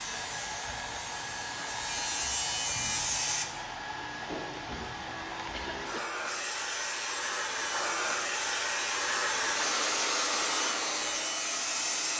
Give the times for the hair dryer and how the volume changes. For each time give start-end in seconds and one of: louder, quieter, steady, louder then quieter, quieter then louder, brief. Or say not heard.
0.0-12.1 louder.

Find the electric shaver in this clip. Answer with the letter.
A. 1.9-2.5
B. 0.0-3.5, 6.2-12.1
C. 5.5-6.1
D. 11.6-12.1
B.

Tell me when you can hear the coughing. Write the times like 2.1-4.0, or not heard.
5.5-6.1.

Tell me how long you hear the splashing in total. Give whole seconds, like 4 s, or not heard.
not heard.